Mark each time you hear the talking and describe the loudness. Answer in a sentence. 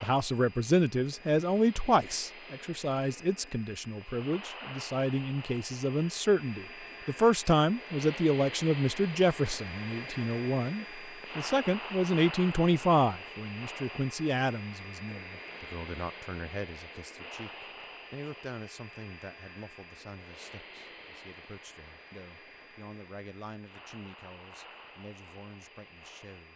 The talking can be heard from 0.0 to 26.5 s, getting quieter.